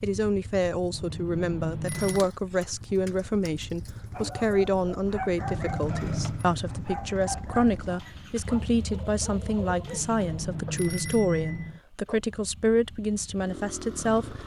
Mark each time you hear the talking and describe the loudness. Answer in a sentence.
You can hear the talking from 0.0 to 14.2 s, at a steady volume.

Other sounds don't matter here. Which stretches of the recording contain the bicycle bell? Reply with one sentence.
The bicycle bell can be heard from 0.9 to 2.2 s, from 5.5 to 6.5 s and from 9.8 to 11.8 s.